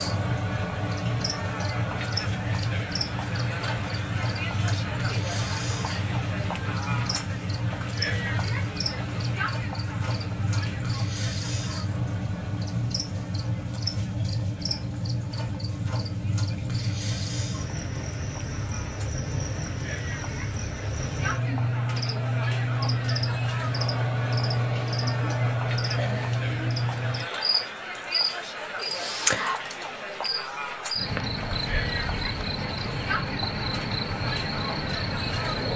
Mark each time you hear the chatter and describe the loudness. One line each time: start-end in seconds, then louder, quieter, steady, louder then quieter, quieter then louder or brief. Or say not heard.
0.0-35.7 quieter then louder.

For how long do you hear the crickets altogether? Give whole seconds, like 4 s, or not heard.
36 s.